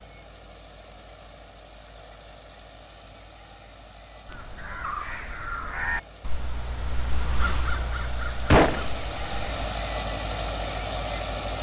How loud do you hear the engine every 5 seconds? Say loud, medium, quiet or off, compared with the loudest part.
quiet, medium, loud.